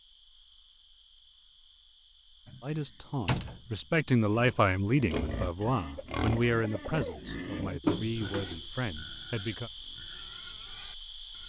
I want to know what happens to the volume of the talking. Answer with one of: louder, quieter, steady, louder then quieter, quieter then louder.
quieter.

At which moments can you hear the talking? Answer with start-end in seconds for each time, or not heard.
2.6-9.7.